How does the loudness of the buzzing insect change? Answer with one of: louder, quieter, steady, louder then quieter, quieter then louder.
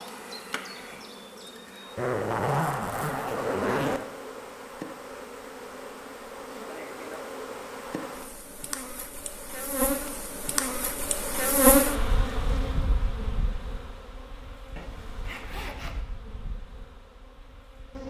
louder then quieter.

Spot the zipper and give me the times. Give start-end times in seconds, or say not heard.
1.9-4.0, 14.8-16.0.